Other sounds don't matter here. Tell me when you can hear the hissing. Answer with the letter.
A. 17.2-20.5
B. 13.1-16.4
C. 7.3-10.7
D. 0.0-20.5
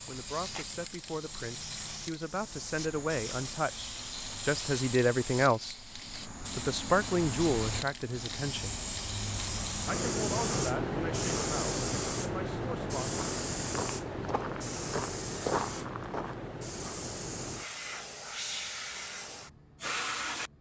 D.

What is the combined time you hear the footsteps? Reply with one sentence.
The footsteps can be heard for 3 seconds in total.